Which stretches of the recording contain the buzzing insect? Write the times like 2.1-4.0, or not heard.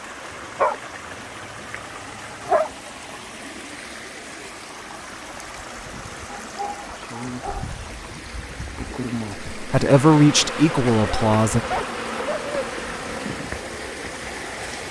5.5-14.8.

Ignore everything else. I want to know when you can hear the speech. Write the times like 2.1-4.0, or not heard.
9.6-11.6.